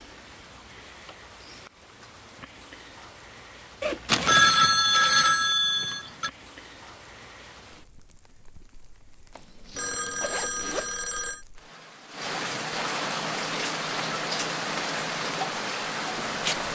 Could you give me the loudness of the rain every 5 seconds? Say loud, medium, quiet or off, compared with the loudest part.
quiet, quiet, loud, loud.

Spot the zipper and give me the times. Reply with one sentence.
The zipper can be heard from 3.8 to 4.3 s and from 9.3 to 10.9 s.